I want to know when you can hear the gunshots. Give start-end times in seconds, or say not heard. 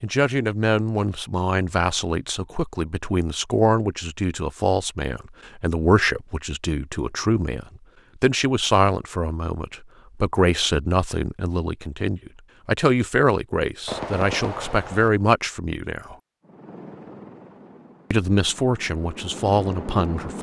13.8-15.1.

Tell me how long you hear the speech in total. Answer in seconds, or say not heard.
18 s.